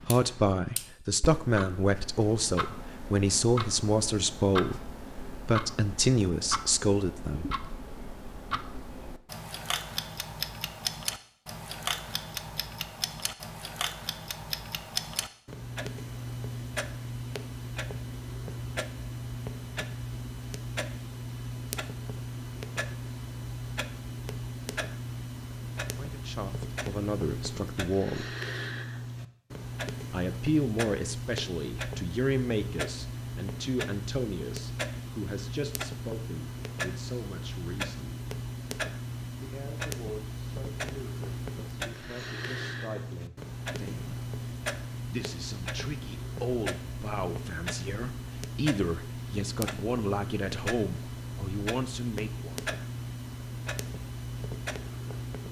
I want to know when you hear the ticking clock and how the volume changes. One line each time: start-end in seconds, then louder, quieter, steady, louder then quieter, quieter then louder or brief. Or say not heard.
0.0-55.4 steady.